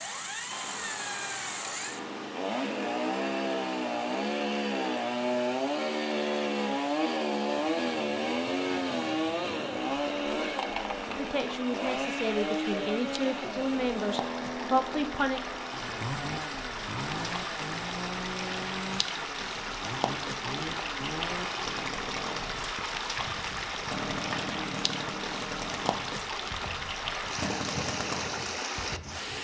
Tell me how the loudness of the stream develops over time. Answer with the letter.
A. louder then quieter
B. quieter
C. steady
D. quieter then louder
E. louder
E.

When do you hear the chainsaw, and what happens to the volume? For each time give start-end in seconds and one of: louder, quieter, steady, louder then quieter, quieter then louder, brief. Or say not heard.
0.0-29.3 quieter.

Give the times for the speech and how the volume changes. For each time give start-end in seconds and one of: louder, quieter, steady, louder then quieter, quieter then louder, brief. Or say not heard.
11.2-15.4 louder.